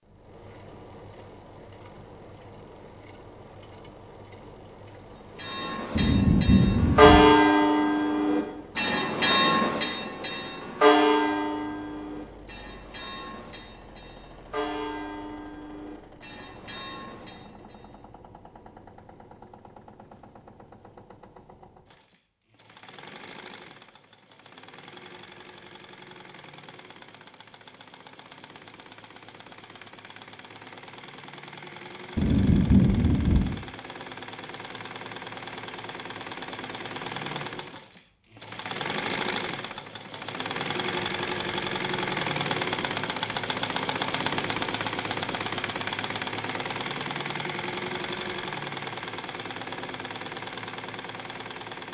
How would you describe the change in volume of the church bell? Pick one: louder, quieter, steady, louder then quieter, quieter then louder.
quieter.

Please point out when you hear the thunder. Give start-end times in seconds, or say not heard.
6.0-7.3, 32.1-33.6.